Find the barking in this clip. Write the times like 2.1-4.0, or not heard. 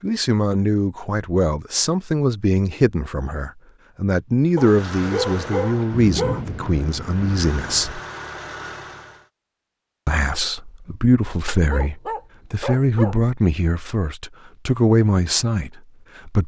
4.5-6.5, 11.4-13.2.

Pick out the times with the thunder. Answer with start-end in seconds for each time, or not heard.
5.9-8.0.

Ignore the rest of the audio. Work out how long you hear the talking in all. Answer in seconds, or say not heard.
14 s.